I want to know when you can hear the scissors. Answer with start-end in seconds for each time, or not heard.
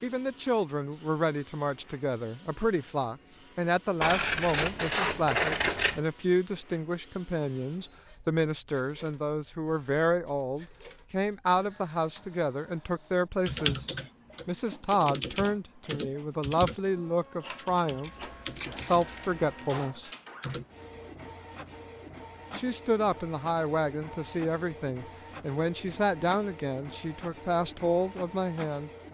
4.0-6.0, 18.0-19.6.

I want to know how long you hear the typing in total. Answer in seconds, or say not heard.
8 s.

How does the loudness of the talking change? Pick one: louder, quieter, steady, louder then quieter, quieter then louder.
steady.